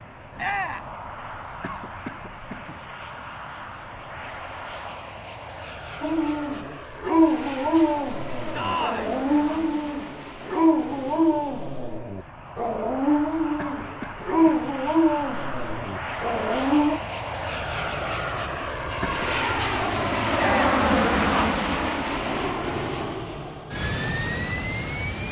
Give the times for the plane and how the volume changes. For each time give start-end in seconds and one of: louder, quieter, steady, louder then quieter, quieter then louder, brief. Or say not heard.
0.0-25.2 louder.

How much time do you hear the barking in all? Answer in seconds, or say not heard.
11 s.